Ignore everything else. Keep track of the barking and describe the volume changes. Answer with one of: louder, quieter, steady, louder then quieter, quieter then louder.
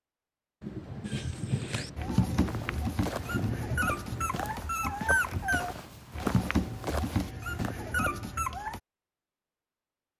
steady.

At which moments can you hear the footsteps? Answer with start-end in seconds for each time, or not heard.
2.5-7.7.